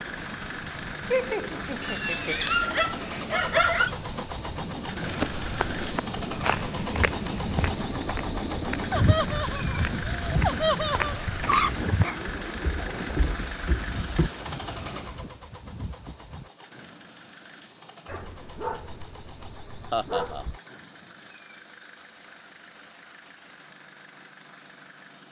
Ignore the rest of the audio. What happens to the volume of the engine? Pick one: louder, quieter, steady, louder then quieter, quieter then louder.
quieter.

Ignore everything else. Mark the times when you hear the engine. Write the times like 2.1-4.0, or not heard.
0.0-25.2.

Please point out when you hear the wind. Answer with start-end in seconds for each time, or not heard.
0.0-16.5.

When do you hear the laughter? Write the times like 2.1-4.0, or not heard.
1.1-2.5, 8.9-11.3, 19.9-20.4.